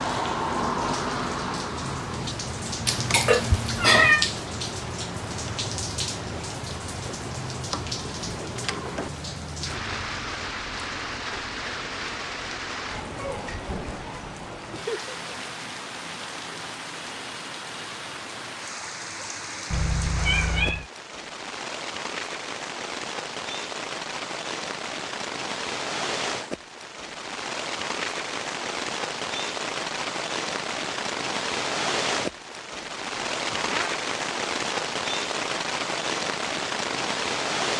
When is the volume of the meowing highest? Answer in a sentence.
The loudest moment of the meowing is at 4 seconds.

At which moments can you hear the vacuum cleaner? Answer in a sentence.
The vacuum cleaner can't be heard in this clip.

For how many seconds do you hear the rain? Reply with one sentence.
The rain can be heard for 38 seconds in total.